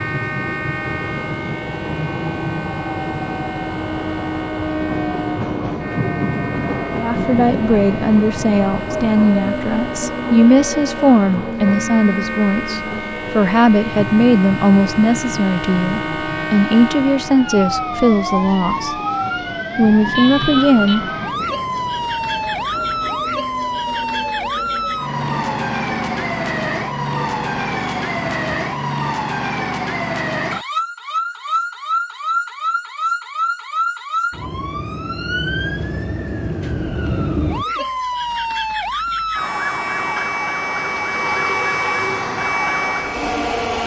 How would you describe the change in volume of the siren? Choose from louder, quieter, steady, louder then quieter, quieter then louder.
louder.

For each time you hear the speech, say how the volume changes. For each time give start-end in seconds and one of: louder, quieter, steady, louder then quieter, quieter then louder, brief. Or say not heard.
7.0-18.9 steady
19.8-21.0 brief.